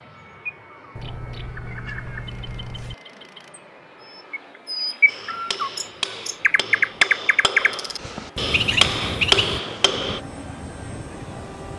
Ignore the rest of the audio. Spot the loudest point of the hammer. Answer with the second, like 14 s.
9 s.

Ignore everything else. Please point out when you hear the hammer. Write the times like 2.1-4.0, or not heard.
5.0-10.2.